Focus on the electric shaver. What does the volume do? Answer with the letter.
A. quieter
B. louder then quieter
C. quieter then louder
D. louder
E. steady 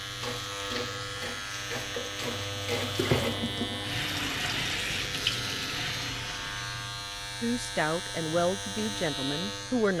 E.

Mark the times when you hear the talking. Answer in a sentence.
The talking can be heard from 7.4 to 9.9 s.